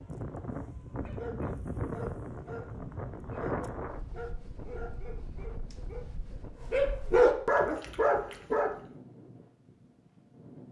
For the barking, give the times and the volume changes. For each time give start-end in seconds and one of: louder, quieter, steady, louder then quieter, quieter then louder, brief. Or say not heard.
0.9-8.7 louder.